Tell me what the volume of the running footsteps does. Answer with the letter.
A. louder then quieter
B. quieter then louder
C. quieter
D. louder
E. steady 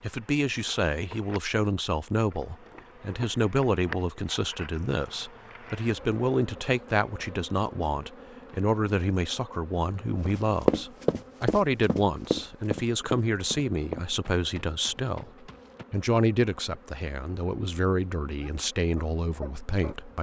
C.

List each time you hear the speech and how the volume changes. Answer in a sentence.
The speech can be heard from 0.0 to 20.1 s, at a steady volume.